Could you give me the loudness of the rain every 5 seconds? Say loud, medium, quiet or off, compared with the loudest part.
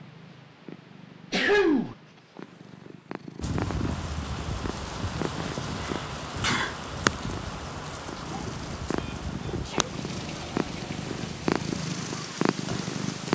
loud, loud, medium.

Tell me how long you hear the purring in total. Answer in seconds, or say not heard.
13 s.